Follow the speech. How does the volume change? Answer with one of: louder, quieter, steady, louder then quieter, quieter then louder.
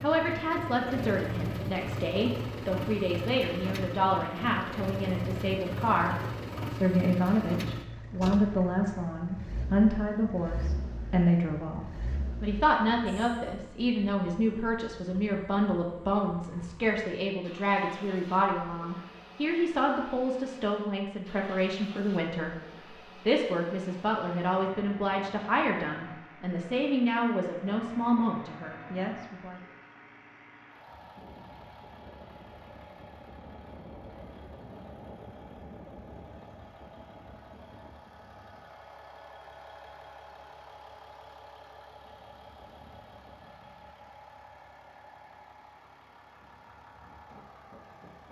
steady.